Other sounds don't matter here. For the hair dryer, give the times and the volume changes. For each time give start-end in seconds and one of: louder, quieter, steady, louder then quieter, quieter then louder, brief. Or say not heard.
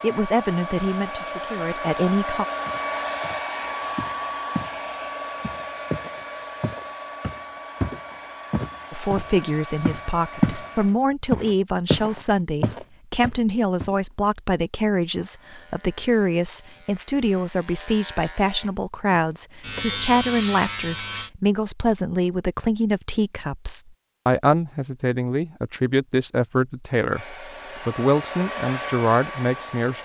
0.0-10.9 quieter
27.1-29.9 brief.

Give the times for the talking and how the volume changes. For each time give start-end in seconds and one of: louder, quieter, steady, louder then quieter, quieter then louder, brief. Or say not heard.
0.0-2.5 brief
8.9-29.9 steady.